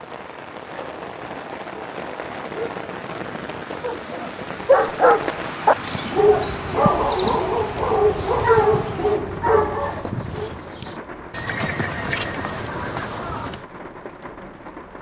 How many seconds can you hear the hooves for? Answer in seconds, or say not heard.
8 s.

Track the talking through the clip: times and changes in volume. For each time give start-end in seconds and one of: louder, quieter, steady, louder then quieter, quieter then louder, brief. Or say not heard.
not heard.